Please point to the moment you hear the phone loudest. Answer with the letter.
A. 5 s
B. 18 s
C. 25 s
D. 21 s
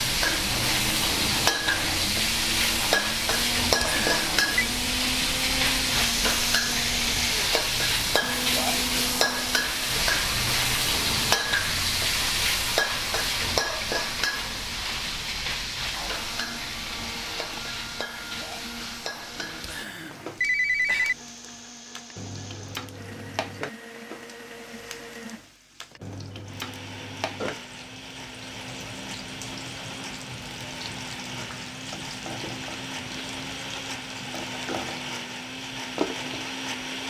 D.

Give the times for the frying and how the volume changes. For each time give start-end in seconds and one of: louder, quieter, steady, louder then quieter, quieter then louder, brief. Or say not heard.
0.0-37.0 quieter.